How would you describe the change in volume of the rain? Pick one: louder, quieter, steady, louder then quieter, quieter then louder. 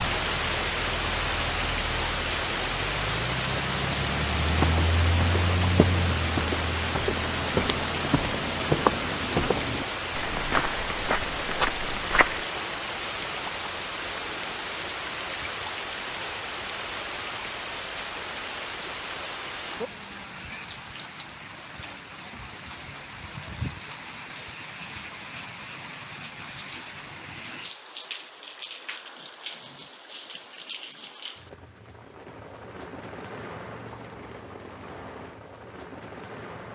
quieter.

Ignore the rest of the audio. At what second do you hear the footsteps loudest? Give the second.
9 s.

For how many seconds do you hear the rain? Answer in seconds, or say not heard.
37 s.